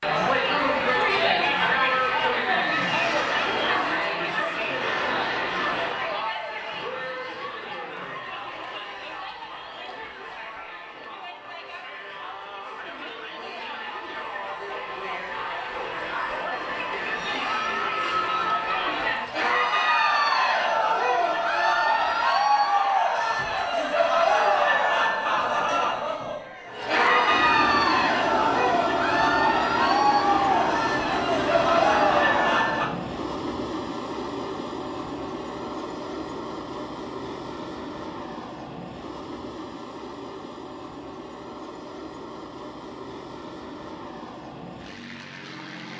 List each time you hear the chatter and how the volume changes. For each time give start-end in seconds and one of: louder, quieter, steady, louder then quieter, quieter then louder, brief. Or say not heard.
0.0-32.9 quieter then louder.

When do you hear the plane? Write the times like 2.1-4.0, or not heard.
2.6-6.3, 26.6-45.9.